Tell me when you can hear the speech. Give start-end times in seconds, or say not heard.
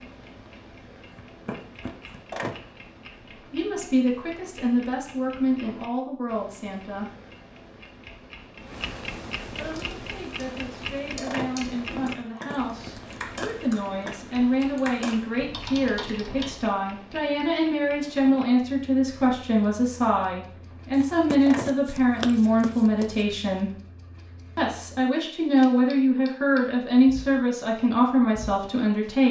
3.4-7.1, 9.6-23.8, 24.6-29.2.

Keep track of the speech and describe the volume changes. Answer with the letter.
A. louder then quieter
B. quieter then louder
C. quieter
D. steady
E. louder
E.